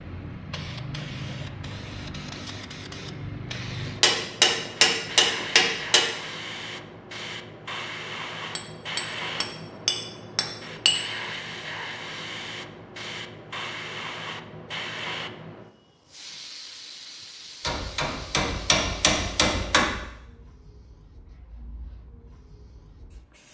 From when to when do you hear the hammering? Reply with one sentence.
You can hear the hammering from 4.0 to 6.0 s, from 8.6 to 11.0 s and from 17.6 to 19.9 s.